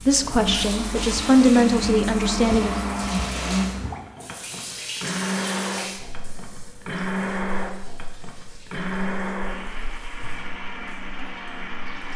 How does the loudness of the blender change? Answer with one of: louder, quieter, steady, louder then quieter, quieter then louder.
quieter.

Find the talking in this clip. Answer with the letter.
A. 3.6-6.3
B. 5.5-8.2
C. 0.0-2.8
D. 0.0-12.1
C.